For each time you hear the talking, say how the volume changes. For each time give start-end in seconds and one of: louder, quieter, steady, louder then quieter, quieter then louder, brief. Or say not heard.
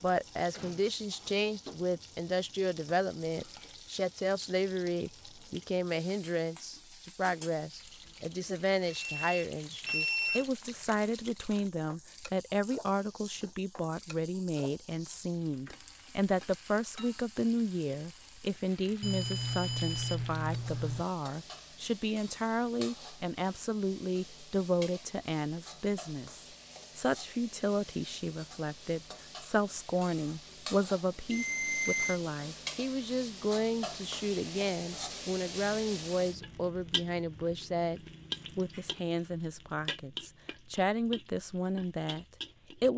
0.0-42.9 steady.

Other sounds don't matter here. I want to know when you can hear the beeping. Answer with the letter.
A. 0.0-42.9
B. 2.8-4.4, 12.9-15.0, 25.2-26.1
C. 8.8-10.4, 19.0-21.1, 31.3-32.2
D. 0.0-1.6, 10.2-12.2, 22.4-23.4
C.